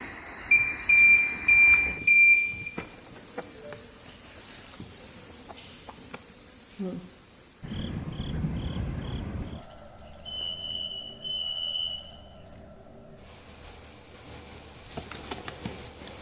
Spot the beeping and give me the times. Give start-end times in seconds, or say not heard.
0.5-2.7, 10.2-12.0.